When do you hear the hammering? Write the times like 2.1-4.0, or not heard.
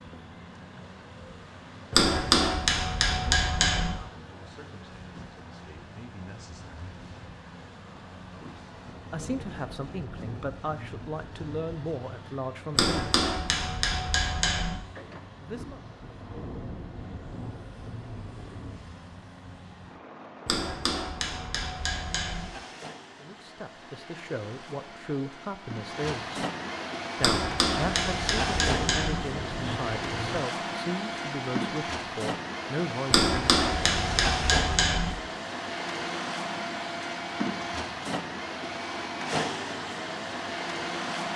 1.9-4.0, 12.8-14.8, 20.4-22.4, 27.2-29.2, 33.1-35.1.